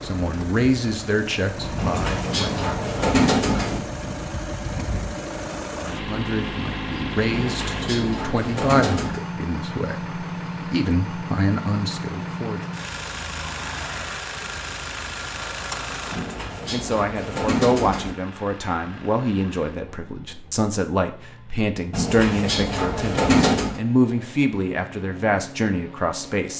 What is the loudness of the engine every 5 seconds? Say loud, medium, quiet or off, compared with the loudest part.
loud, loud, loud, medium, quiet, medium.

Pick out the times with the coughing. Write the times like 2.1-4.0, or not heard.
not heard.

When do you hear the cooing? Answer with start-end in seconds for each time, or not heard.
1.8-3.8, 7.3-9.2, 16.1-18.1, 21.9-23.8.